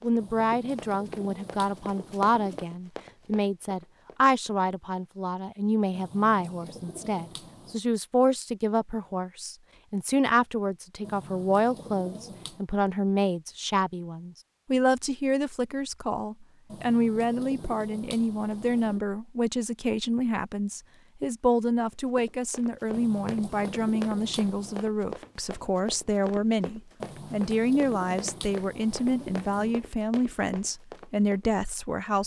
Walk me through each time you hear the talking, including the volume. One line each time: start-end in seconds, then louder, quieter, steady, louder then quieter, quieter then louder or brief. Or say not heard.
0.0-32.2 steady.